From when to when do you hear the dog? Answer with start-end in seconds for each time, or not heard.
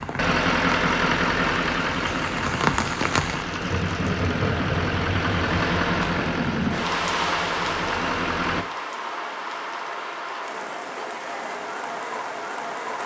not heard.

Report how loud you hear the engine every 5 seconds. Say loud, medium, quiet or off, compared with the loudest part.
loud, loud, off.